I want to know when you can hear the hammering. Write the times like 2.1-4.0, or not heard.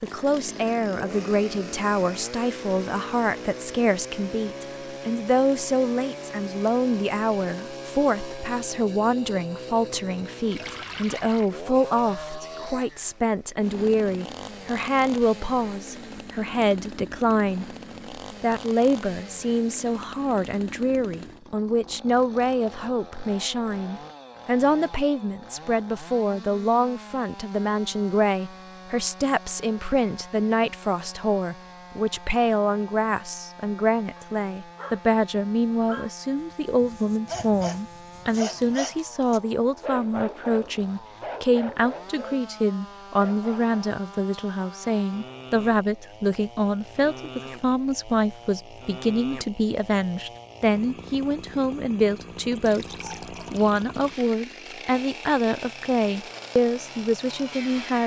not heard.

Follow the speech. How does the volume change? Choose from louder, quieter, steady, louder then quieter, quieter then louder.
steady.